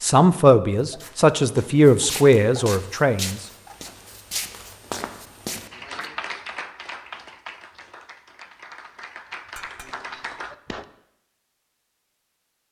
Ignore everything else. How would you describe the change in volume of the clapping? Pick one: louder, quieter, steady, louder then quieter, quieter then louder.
quieter then louder.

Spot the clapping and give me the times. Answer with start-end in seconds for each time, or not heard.
5.7-10.8.